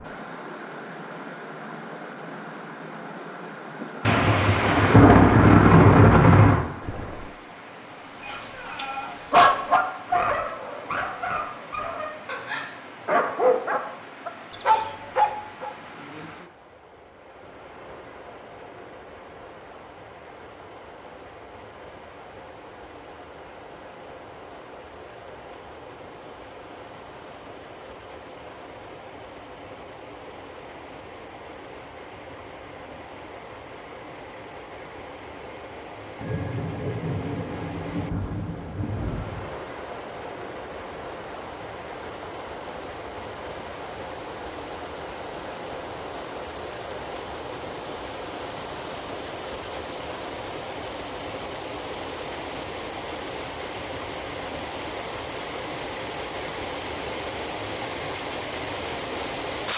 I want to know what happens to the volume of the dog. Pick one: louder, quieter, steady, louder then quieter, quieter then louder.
quieter then louder.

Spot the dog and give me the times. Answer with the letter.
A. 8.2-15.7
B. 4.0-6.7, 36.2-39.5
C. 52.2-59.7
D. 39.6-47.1
A.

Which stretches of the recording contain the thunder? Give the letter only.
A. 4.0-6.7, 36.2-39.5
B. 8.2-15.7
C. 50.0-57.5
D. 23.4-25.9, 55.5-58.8
A.